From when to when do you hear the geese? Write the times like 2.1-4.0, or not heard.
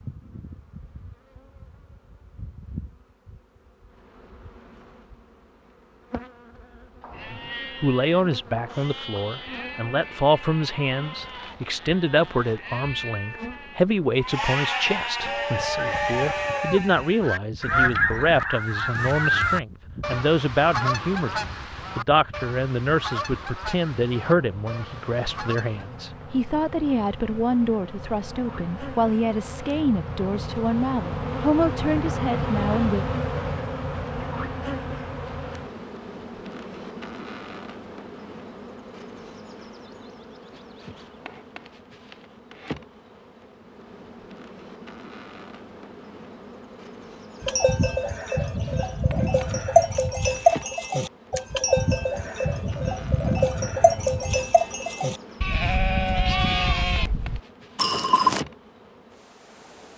15.2-25.9.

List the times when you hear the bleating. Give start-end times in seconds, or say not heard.
7.0-17.9, 47.4-58.5.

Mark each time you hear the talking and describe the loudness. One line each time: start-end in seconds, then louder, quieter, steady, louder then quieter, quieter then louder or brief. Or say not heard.
7.2-33.0 steady.